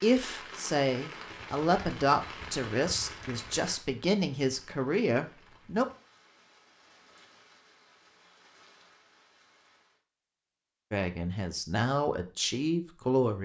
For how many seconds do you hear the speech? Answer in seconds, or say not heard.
8 s.